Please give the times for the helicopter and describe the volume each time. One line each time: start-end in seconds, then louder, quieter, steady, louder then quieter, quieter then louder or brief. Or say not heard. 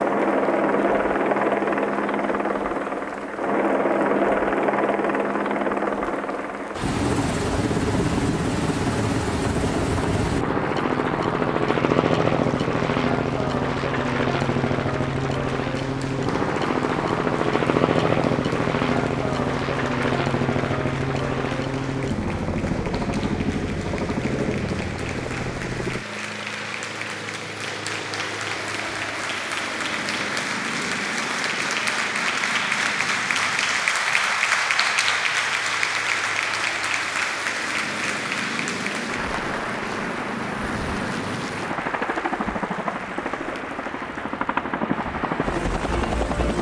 0.0-46.5 quieter then louder.